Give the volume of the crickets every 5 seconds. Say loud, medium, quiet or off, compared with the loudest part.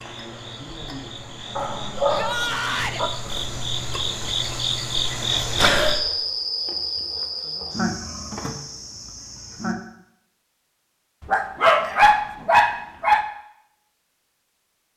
medium, loud, off.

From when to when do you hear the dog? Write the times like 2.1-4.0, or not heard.
1.6-3.1, 11.2-13.2.